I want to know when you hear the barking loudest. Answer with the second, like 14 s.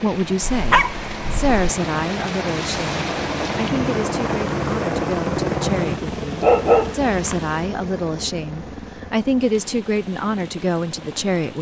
7 s.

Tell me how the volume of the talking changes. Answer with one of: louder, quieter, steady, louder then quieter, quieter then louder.
quieter then louder.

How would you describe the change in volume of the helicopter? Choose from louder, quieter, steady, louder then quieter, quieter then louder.
louder then quieter.